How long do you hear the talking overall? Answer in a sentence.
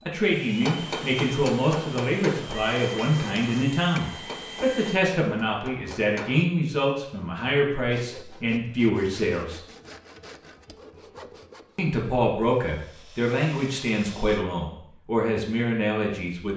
You can hear the talking for 14 seconds altogether.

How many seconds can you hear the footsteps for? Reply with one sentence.
The footsteps can't be heard in this clip.